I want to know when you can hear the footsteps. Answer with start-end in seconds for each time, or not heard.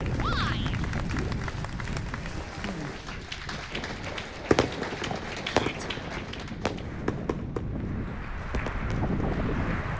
not heard.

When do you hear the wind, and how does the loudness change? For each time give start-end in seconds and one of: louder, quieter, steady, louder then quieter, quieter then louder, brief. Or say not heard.
0.0-9.9 quieter then louder.